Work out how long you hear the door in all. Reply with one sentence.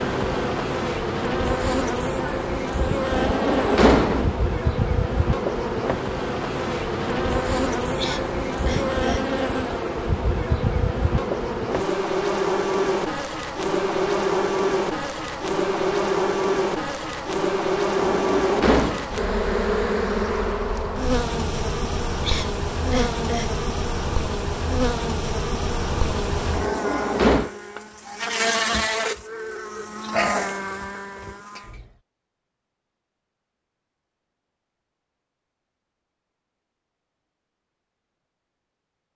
You can hear the door for 3 seconds altogether.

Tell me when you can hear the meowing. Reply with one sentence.
The meowing can't be heard in this clip.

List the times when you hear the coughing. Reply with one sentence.
You can hear the coughing from 8.0 to 9.3 s and from 22.2 to 23.6 s.